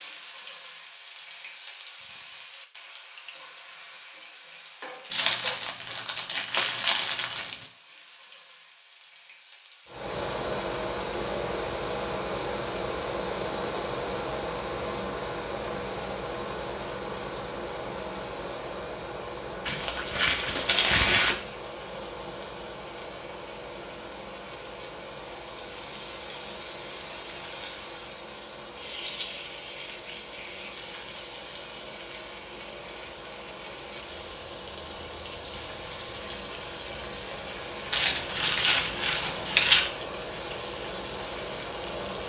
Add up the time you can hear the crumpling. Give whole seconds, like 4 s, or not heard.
6 s.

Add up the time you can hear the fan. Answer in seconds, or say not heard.
32 s.